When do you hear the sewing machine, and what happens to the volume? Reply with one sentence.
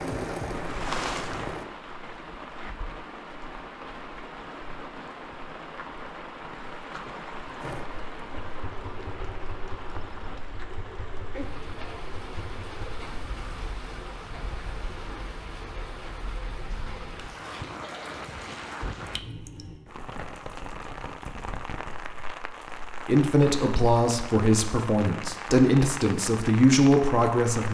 You can hear the sewing machine briefly from 0.0 to 1.6 s; and from 7.6 to 13.1 s, at a steady volume.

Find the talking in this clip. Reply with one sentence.
The talking can be heard from 23.1 to 27.6 s.